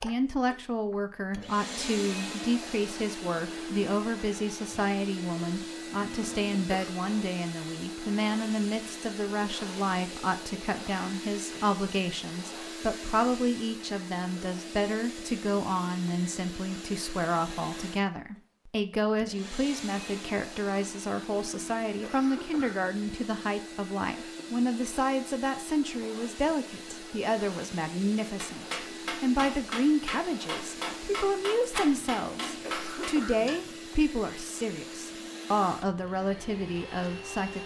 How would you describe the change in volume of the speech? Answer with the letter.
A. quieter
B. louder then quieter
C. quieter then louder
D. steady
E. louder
D.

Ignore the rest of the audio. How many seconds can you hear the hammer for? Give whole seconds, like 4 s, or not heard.
5 s.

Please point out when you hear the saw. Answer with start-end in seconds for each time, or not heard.
not heard.